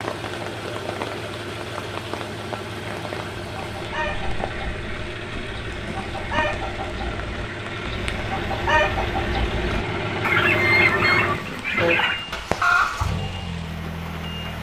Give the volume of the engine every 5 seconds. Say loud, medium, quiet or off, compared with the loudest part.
medium, loud, loud.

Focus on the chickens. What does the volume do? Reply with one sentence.
The volume of the chickens goes up.